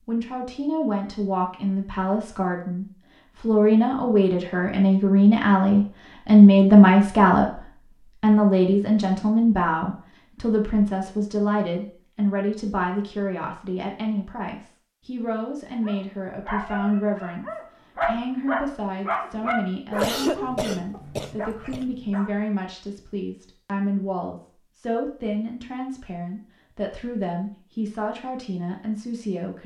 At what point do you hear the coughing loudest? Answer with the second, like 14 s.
20 s.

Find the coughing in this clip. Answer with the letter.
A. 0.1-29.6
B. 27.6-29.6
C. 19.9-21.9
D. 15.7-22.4
C.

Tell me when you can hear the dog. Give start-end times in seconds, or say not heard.
15.7-22.4.